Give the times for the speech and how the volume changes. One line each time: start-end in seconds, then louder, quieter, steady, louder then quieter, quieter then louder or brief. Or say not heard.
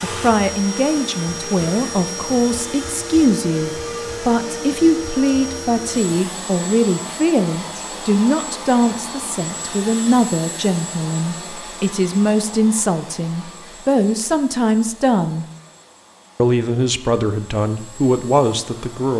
0.0-15.4 steady
16.4-19.1 brief.